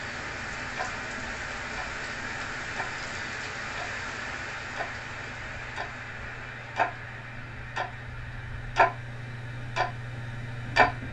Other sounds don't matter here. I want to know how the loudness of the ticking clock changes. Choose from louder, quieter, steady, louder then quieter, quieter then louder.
louder.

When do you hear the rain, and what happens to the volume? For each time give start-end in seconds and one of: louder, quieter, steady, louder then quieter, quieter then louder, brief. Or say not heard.
0.0-11.0 quieter.